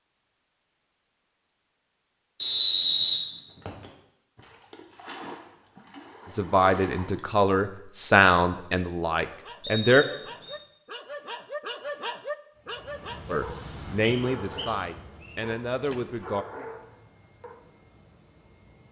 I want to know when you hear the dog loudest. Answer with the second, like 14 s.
12 s.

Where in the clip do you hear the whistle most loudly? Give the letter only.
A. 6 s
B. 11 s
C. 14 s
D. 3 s
D.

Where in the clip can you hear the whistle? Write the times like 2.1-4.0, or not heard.
2.4-3.9, 9.6-10.6, 14.0-15.4.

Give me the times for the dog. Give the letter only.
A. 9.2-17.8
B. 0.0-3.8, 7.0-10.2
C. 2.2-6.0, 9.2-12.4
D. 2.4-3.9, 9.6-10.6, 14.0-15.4
A.